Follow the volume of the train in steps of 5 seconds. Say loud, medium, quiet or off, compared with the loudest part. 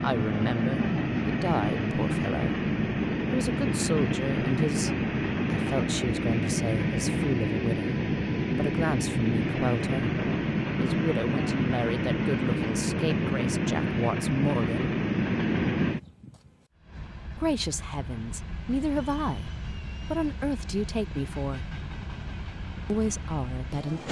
loud, loud, loud, medium, quiet.